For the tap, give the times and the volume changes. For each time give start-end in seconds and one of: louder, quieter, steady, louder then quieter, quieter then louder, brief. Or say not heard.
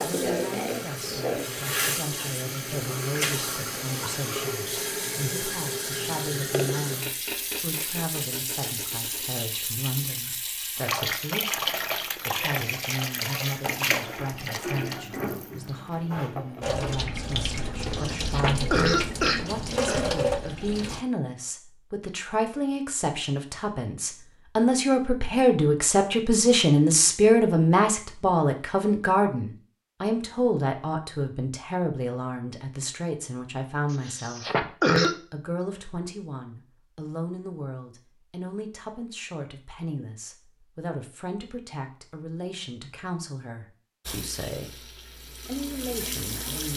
0.0-21.1 steady
44.0-46.7 brief.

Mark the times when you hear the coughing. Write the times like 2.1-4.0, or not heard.
17.8-20.1, 33.9-35.1.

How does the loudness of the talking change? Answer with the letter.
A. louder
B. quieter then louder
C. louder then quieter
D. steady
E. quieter
C.